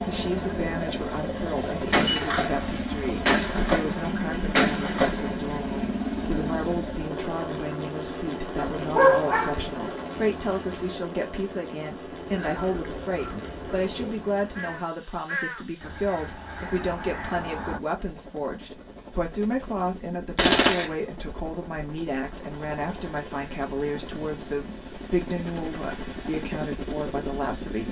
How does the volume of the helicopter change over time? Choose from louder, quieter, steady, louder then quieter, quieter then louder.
quieter then louder.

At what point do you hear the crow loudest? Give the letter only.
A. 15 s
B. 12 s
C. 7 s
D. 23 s
A.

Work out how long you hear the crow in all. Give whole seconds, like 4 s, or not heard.
6 s.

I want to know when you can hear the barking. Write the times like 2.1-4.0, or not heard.
8.4-9.8.